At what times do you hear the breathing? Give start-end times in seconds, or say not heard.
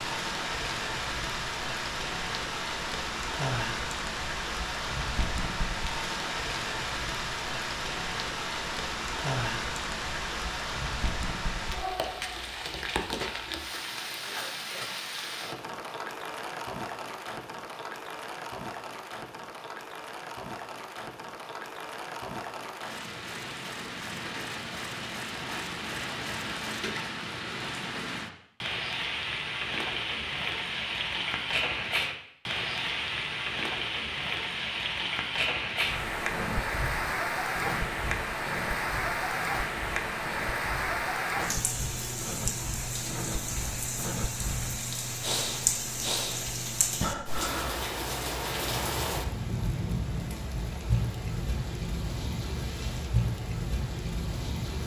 36.1-47.9.